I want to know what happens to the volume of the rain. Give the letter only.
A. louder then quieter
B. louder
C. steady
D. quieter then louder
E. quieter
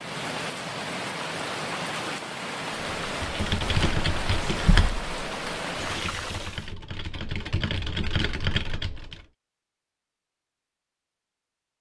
C.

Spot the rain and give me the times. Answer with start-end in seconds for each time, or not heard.
0.0-6.8.